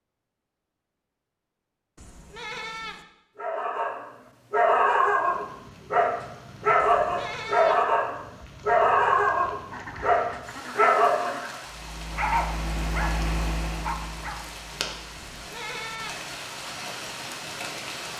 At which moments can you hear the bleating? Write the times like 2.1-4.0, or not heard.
1.9-3.0, 6.8-7.8, 15.2-16.2.